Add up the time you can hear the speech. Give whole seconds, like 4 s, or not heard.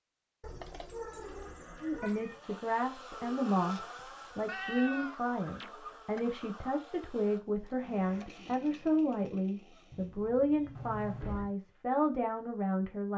11 s.